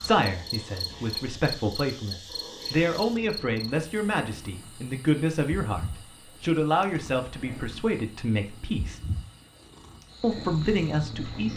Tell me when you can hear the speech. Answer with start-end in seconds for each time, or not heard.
0.0-9.0, 10.2-11.5.